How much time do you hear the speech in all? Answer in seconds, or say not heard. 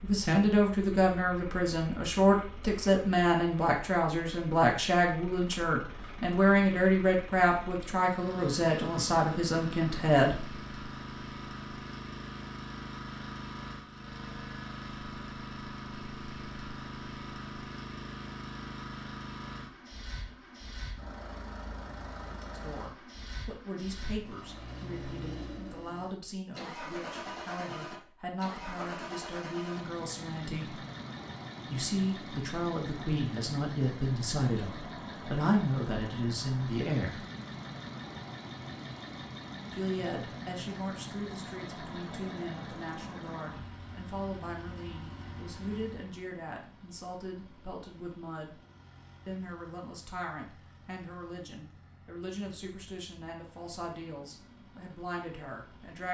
40 s.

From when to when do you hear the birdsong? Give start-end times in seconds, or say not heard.
not heard.